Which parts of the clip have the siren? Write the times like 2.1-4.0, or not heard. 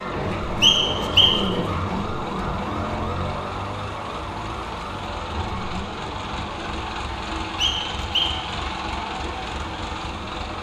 0.0-10.5.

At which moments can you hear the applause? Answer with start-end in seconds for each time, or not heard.
not heard.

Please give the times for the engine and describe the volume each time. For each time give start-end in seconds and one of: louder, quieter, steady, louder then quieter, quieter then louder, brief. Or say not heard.
0.0-10.5 louder.